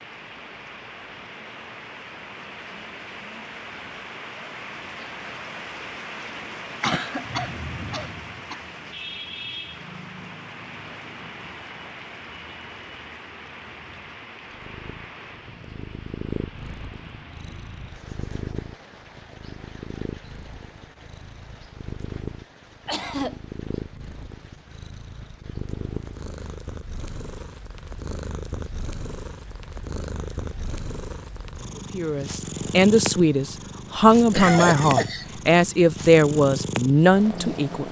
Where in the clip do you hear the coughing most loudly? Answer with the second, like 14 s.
35 s.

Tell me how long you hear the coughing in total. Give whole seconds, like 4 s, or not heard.
3 s.